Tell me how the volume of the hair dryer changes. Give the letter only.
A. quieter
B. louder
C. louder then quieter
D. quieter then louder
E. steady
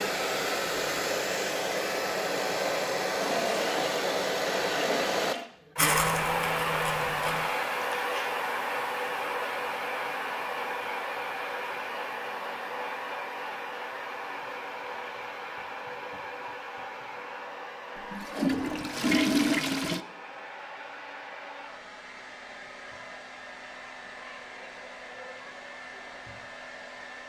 A.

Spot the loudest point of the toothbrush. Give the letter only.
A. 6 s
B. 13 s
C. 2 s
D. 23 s
A.